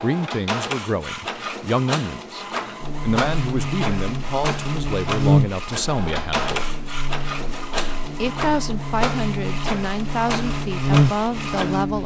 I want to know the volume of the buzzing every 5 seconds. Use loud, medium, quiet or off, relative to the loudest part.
medium, loud, loud.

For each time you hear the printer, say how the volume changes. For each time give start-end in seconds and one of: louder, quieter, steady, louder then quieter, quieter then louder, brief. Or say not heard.
0.0-12.0 steady.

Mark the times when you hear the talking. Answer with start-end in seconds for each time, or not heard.
0.0-6.8, 8.0-12.0.